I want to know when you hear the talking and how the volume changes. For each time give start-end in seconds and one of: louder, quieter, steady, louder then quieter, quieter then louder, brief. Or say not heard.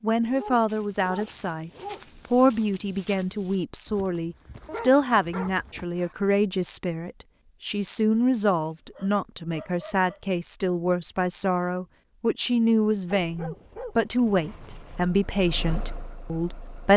0.0-16.9 steady.